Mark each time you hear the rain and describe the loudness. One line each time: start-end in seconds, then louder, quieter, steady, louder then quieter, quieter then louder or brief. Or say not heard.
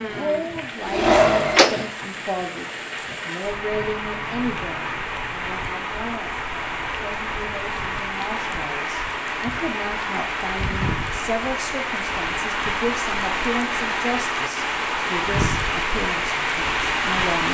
0.0-17.5 louder.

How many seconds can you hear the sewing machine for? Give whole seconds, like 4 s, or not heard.
2 s.